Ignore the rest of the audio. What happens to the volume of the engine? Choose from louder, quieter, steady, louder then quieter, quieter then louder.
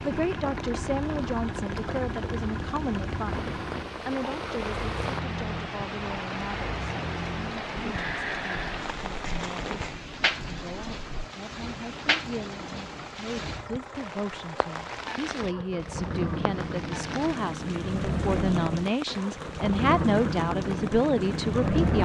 quieter then louder.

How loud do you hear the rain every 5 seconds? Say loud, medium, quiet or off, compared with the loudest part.
loud, loud, loud, medium, medium.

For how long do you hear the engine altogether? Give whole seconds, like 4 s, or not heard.
22 s.